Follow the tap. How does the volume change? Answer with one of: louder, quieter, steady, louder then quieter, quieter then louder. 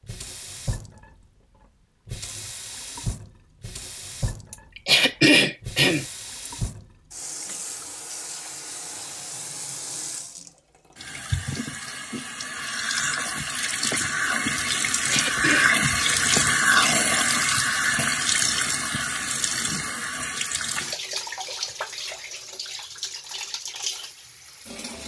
louder then quieter.